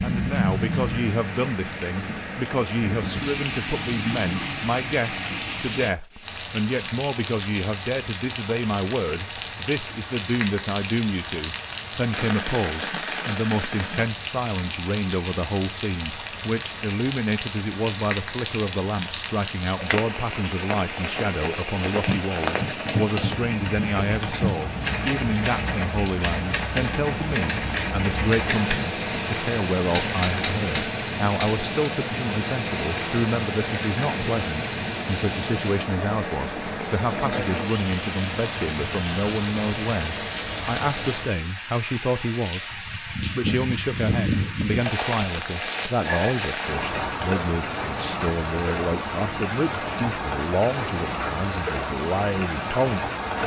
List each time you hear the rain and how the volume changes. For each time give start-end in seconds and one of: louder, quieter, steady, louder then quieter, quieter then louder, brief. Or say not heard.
0.0-53.4 steady.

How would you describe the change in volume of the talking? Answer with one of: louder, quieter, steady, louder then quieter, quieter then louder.
steady.